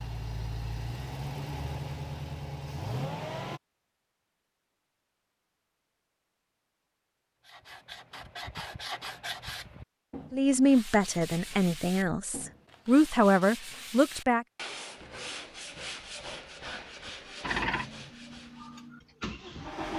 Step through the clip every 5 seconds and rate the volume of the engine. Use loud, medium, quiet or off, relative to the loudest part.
loud, off, off, loud.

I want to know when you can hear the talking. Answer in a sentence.
The talking can be heard from 10.3 to 14.4 s.